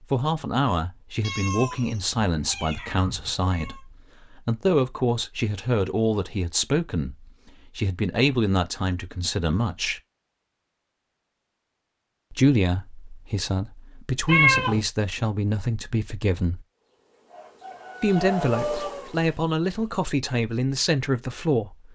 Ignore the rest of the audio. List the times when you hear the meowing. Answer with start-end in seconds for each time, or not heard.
1.2-3.8, 14.2-14.8.